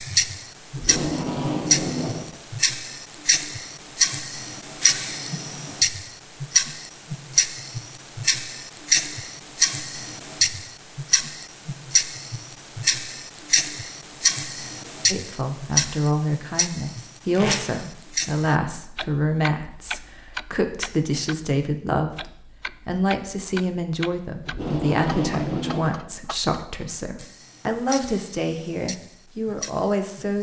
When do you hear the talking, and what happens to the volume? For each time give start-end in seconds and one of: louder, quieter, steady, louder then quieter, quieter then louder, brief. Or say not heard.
15.1-30.3 steady.